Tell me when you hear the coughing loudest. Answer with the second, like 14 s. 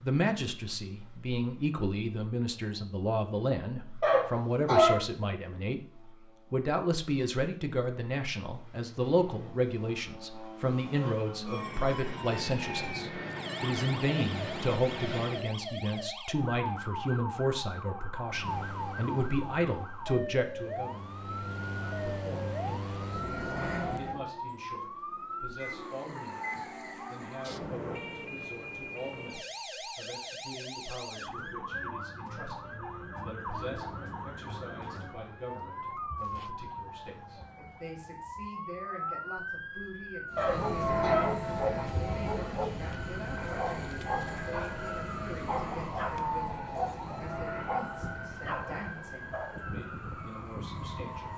5 s.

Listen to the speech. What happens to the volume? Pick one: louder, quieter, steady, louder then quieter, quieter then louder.
quieter.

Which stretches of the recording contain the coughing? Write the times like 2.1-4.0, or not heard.
4.0-5.0, 40.4-42.2.